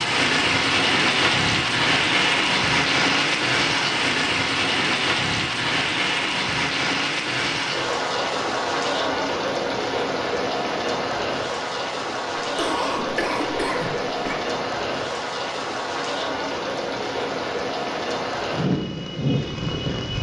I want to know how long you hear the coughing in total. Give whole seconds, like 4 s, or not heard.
2 s.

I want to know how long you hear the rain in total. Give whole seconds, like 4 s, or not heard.
20 s.